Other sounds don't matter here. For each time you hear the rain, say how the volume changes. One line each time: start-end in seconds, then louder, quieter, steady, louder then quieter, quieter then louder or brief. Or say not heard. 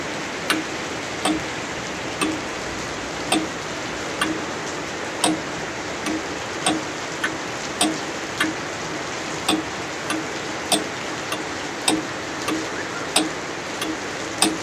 0.0-14.5 steady.